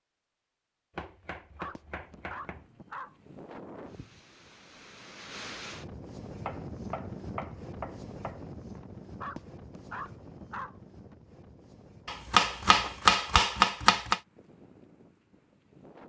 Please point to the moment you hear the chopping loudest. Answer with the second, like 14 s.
13 s.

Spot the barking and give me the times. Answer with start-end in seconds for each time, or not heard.
1.6-3.1, 9.2-10.8.